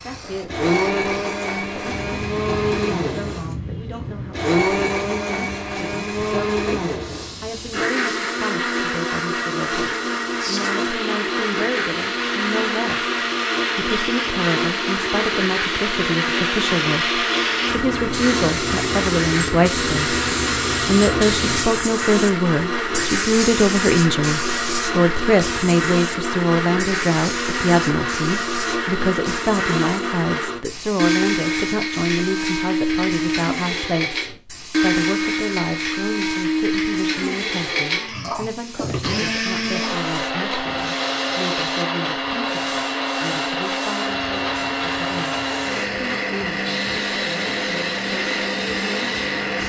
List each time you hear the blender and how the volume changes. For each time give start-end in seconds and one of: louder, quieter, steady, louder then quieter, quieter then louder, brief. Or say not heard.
0.0-49.6 steady.